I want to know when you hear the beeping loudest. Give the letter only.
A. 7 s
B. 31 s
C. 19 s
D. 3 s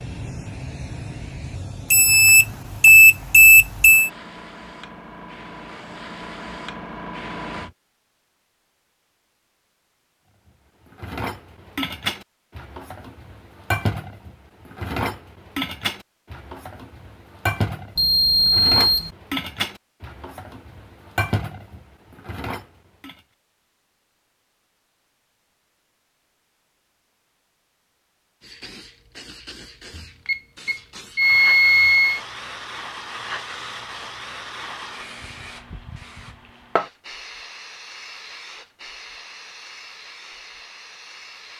D.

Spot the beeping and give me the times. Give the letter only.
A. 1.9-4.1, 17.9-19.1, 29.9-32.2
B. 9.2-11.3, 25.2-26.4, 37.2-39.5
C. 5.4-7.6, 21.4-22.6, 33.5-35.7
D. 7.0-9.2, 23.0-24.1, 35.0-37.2
A.